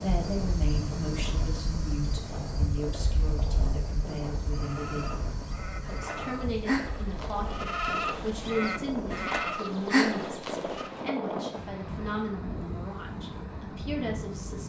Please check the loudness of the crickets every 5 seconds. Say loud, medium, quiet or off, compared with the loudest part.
loud, medium, off.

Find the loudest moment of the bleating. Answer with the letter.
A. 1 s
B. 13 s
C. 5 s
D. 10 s
D.